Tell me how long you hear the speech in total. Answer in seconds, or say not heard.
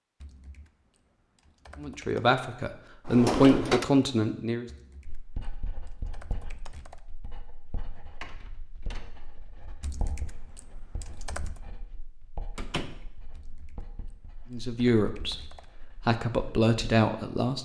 6 s.